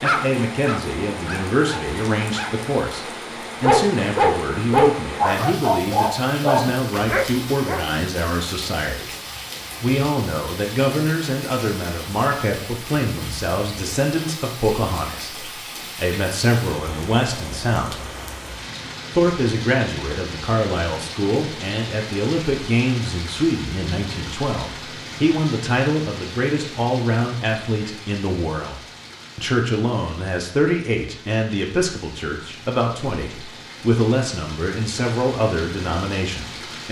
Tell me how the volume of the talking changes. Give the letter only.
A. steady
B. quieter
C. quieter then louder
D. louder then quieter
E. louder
A.